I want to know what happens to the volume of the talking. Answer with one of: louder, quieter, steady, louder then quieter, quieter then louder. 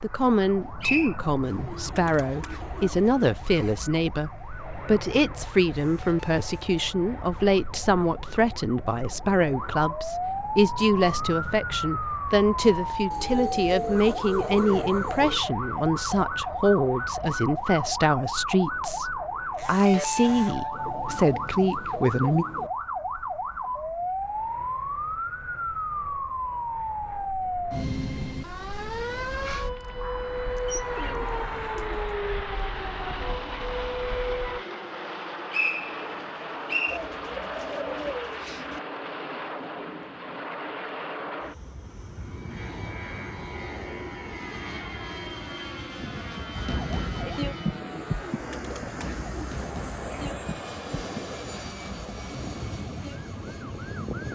steady.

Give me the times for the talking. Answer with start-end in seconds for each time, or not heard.
0.0-22.4.